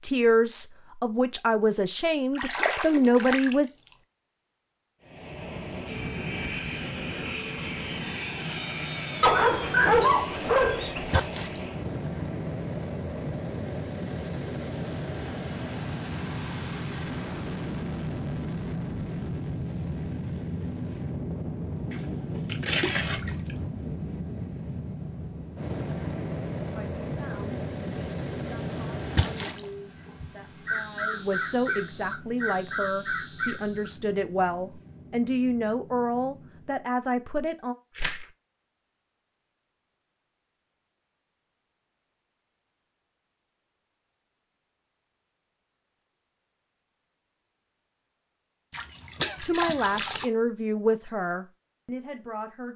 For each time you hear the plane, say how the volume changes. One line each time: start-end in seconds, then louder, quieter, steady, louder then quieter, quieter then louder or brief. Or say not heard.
5.0-37.0 quieter.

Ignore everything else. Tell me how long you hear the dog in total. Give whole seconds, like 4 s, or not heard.
2 s.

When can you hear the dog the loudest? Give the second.
10 s.